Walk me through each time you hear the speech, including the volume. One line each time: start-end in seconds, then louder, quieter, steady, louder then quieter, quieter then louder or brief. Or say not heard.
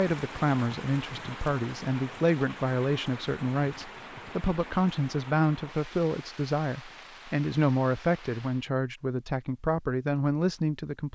0.0-11.1 steady.